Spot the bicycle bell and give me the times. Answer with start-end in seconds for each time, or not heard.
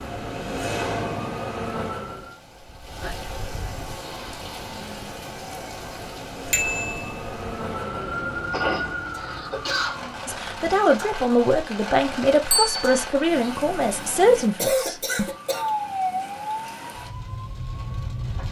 6.5-7.2, 12.5-12.9.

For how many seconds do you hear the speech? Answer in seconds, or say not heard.
5 s.